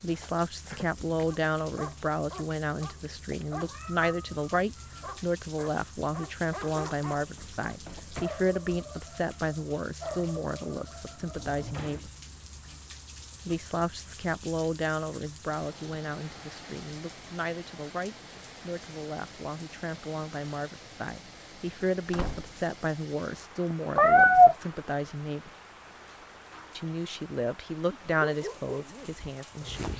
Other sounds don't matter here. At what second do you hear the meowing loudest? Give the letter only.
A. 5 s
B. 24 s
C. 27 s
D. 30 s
B.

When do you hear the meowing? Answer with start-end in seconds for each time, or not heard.
3.6-5.2, 23.9-24.6.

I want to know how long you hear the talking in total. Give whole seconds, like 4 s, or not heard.
27 s.